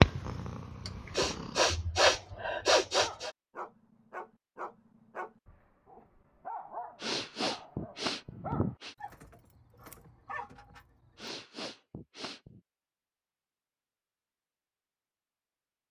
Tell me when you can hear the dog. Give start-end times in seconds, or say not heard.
1.9-11.3.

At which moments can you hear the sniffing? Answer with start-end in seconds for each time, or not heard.
0.8-3.3, 7.0-8.9, 11.2-12.6.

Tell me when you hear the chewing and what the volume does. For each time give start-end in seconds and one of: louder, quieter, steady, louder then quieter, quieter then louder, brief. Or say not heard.
not heard.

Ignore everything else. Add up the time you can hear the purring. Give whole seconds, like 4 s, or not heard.
2 s.